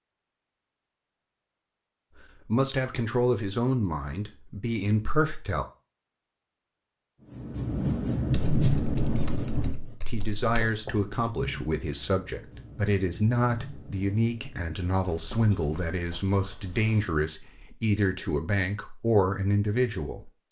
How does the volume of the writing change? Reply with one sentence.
The volume of the writing goes down.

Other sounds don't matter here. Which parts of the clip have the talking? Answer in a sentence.
The talking can be heard from 2.5 to 5.7 s and from 10.1 to 20.4 s.